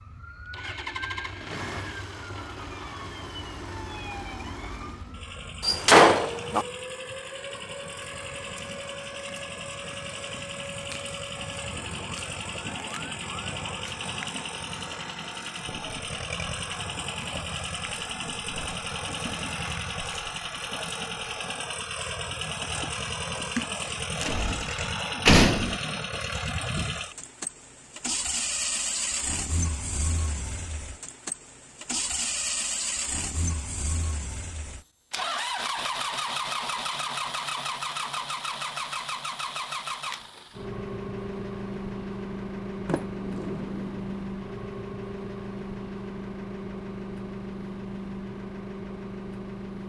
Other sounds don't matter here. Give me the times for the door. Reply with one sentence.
The door can be heard from 5.6 to 6.7 s, from 24.2 to 25.8 s and from 42.9 to 44.2 s.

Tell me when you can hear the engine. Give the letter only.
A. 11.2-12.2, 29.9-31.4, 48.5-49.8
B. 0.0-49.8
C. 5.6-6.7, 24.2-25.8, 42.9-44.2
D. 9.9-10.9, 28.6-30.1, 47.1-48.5
B.